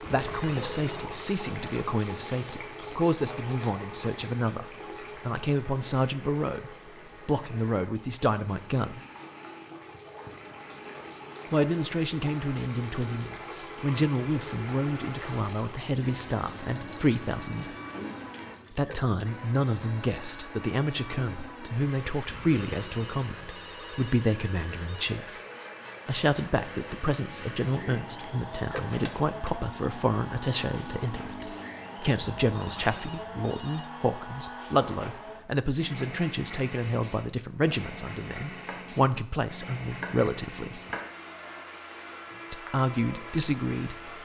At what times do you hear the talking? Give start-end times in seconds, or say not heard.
0.1-9.0, 11.5-17.8, 18.7-25.4, 26.1-40.8, 42.5-44.2.